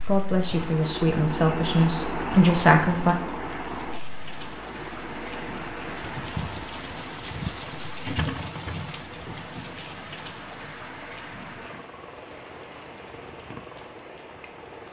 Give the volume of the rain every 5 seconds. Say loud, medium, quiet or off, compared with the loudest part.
medium, loud, medium.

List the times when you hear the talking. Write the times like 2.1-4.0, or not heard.
0.0-3.1.